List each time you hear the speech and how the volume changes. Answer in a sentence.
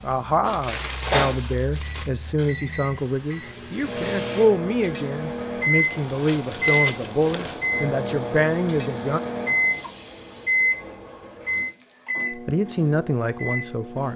You can hear the speech from 0.0 to 9.2 s, at a steady volume; and briefly from 12.3 to 14.1 s.